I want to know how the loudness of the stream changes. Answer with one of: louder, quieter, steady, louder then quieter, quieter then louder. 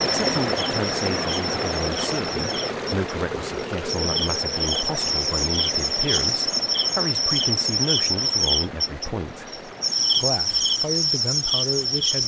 quieter.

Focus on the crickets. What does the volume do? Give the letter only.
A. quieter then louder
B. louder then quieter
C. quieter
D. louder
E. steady
D.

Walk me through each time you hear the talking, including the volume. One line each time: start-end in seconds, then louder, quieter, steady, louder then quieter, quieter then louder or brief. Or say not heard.
0.0-12.2 steady.